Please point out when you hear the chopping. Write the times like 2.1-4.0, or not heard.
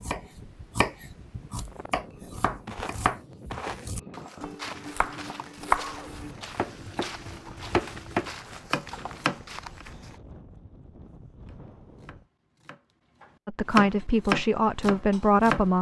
0.0-9.8, 11.4-15.7.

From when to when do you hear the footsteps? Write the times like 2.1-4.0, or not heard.
2.6-10.2.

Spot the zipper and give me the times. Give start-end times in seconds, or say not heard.
not heard.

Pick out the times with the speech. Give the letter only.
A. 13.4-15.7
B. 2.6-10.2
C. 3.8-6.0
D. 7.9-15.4
A.